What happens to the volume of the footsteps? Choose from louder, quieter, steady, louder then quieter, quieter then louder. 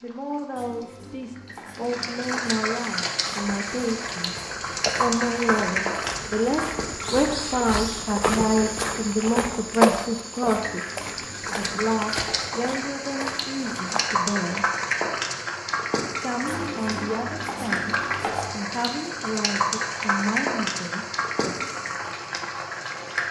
louder then quieter.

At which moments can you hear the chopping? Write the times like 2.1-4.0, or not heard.
0.6-2.5, 10.5-12.5, 16.4-18.5.